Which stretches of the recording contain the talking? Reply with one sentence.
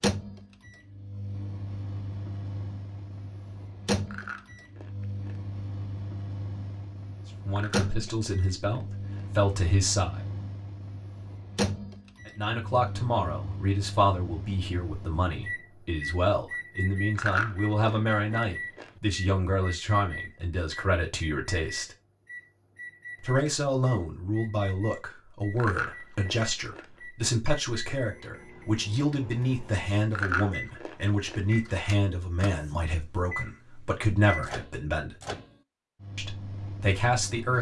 You can hear the talking from 7.5 to 10.2 s, from 12.2 to 21.9 s, from 23.2 to 35.1 s and from 36.1 to 37.5 s.